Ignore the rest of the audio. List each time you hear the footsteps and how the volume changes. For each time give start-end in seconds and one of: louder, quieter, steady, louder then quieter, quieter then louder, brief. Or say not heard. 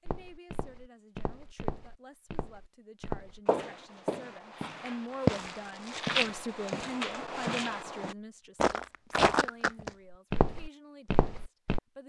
0.1-11.8 louder.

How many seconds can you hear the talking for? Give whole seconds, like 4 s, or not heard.
12 s.